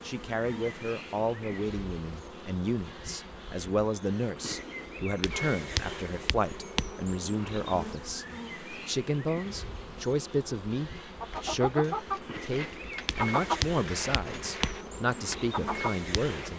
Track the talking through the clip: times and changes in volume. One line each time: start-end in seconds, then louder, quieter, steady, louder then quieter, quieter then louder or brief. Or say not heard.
0.0-16.5 steady.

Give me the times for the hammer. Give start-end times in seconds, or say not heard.
not heard.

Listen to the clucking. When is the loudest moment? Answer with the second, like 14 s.
13 s.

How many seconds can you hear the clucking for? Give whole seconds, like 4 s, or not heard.
5 s.